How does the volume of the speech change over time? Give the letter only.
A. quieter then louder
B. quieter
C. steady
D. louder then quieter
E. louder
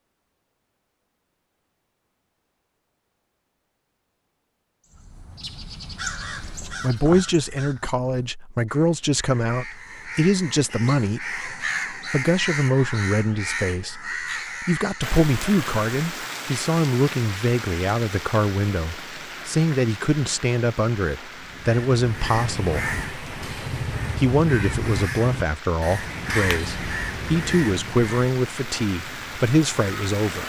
C.